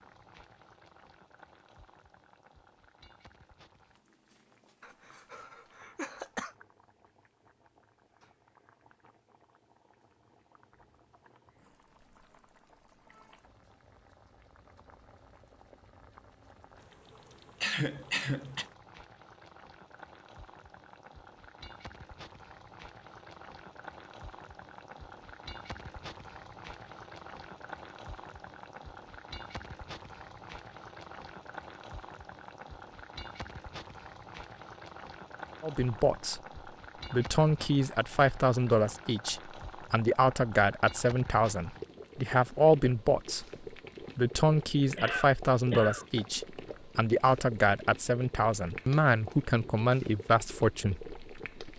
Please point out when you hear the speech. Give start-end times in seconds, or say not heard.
35.6-36.4, 37.1-43.5, 44.1-51.7.